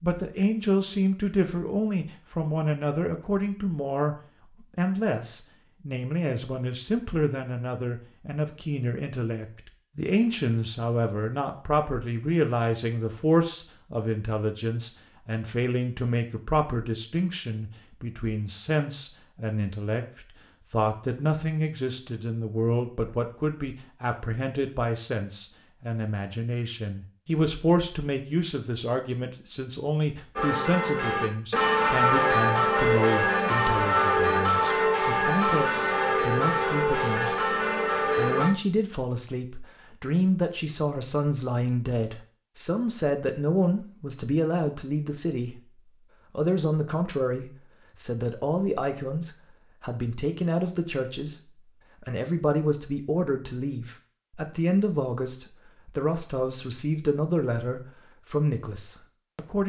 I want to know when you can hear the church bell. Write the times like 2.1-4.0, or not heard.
30.4-38.5.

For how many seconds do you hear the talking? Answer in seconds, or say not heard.
58 s.